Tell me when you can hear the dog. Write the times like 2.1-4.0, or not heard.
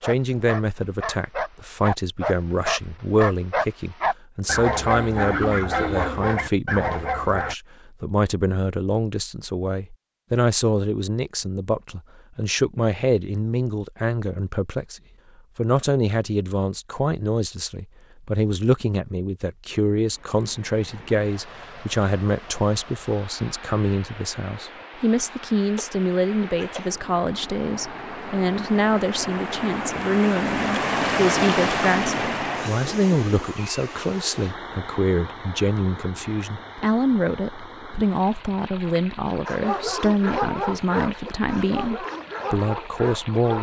0.0-7.5, 39.5-43.5.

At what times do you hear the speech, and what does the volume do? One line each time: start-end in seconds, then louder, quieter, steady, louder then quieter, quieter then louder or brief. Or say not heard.
0.0-43.5 steady.